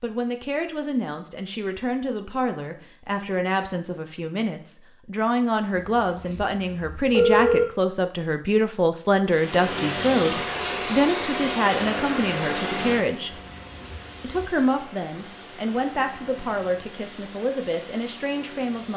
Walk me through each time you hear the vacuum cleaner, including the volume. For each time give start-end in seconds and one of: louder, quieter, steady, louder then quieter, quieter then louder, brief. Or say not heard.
9.2-18.9 quieter.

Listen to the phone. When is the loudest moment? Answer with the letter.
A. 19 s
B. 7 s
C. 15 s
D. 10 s
B.